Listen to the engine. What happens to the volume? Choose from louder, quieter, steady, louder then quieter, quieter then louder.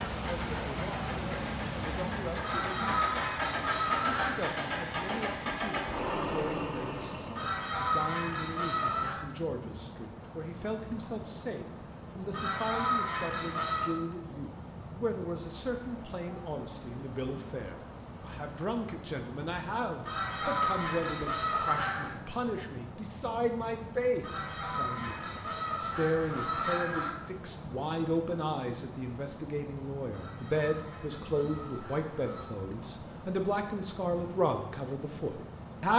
louder.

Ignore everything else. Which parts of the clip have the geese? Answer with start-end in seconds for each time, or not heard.
2.4-4.4, 7.3-9.2, 12.3-13.9, 20.1-22.1, 24.2-27.1, 30.1-32.5.